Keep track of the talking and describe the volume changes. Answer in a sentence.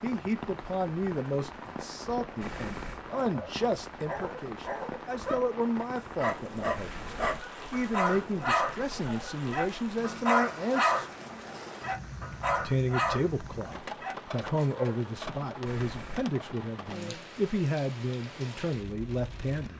The loudness of the talking stays about the same.